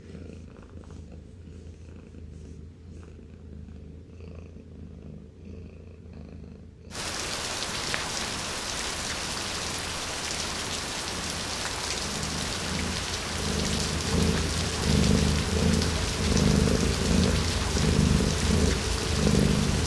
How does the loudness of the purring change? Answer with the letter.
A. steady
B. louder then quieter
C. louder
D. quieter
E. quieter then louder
C.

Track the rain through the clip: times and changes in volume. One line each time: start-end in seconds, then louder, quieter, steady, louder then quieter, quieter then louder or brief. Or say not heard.
6.9-19.8 steady.